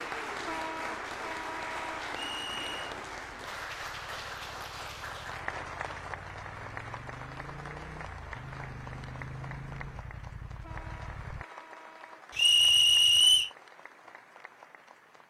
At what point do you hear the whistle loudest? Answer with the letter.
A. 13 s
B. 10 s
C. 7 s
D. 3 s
A.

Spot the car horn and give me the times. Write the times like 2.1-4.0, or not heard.
0.4-2.0, 10.6-12.2.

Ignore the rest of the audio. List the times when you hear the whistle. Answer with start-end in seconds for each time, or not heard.
2.1-3.0, 12.3-13.5.